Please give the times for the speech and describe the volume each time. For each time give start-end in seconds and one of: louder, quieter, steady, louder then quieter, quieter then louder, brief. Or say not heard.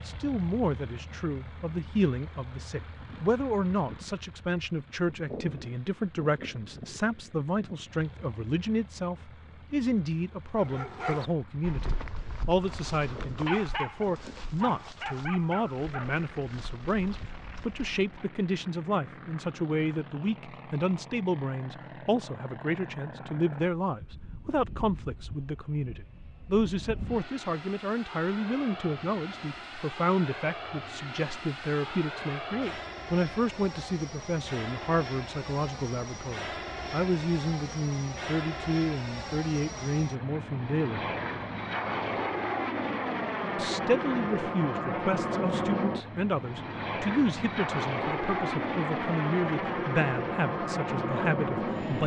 0.0-41.0 steady
43.5-52.0 steady.